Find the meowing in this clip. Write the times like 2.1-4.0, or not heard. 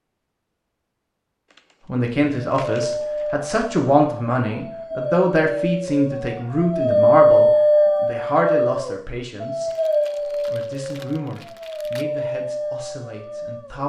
not heard.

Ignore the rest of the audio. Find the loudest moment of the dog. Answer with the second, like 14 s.
7 s.